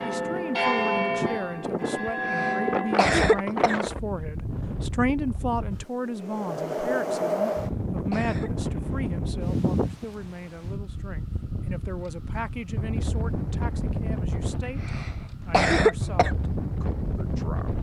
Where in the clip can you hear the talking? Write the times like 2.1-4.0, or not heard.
0.0-17.7.